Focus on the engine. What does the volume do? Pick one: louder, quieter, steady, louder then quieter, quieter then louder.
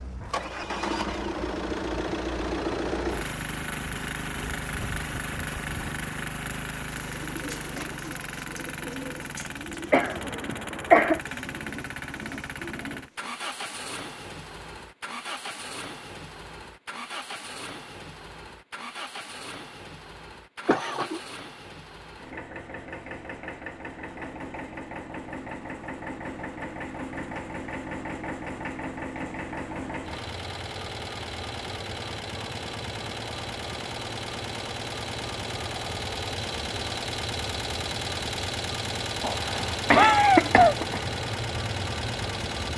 quieter then louder.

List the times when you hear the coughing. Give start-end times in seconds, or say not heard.
9.9-11.2, 20.6-21.2, 39.2-41.0.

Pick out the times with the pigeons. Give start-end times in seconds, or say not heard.
7.0-13.3.